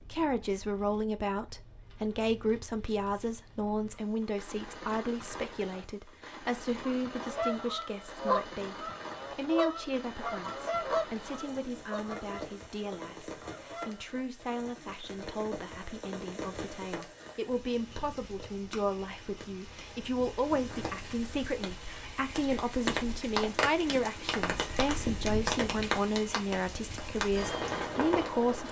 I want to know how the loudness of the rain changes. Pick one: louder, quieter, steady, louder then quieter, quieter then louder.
louder.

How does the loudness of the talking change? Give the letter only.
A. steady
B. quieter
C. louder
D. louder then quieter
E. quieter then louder
E.